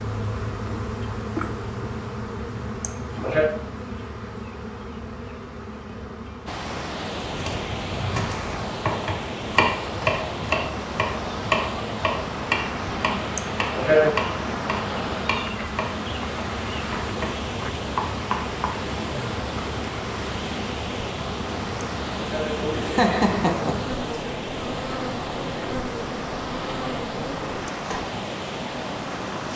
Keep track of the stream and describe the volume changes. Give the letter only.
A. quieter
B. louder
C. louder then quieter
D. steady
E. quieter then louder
D.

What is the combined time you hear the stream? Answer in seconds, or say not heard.
23 s.